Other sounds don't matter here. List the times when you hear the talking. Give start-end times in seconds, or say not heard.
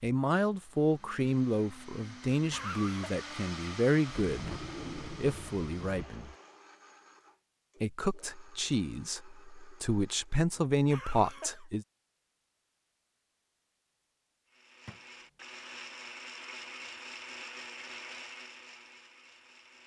0.0-6.3, 7.8-11.8.